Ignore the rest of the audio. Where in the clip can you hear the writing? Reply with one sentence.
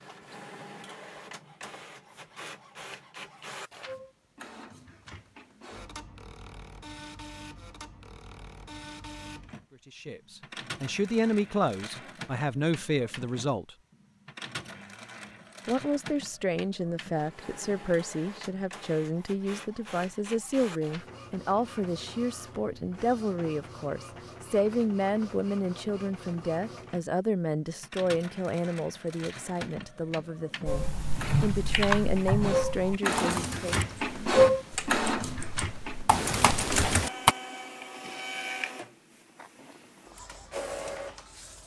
The writing can't be heard in this clip.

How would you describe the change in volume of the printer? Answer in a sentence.
The loudness of the printer goes up.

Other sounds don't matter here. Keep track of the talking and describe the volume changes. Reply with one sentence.
The loudness of the talking stays about the same.